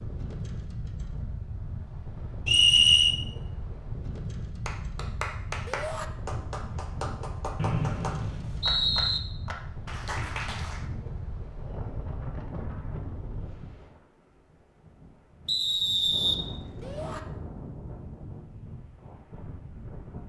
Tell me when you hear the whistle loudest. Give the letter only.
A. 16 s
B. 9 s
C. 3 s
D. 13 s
C.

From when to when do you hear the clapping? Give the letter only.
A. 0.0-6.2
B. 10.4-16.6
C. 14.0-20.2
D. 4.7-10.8
D.